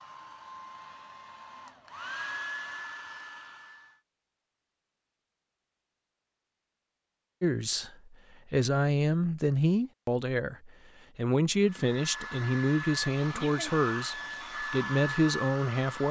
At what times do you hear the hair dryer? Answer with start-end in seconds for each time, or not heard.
0.0-4.0, 11.6-16.0.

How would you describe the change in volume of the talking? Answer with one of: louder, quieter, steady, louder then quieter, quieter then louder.
steady.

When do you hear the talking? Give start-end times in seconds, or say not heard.
7.4-16.0.